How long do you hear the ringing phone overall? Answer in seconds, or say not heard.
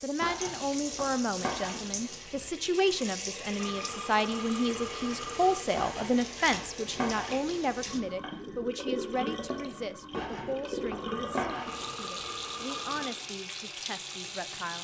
4 s.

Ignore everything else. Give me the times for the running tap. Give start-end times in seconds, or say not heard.
0.0-14.7.